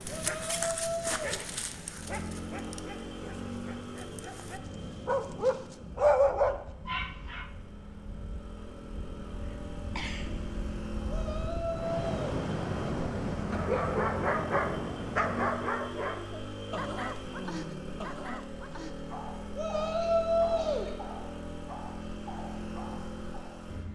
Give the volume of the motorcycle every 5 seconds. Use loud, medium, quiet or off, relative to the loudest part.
loud, medium, loud, loud, loud.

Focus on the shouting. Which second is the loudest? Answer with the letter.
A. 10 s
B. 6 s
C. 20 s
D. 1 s
C.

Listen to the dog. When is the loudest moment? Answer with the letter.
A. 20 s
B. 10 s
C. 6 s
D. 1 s
C.